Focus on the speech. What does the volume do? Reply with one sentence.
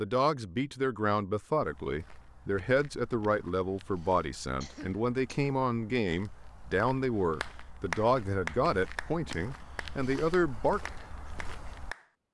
The volume of the speech stays about the same.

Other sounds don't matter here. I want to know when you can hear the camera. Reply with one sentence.
You can't hear the camera here.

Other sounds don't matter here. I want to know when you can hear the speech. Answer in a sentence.
The speech can be heard from 0.0 to 10.8 s.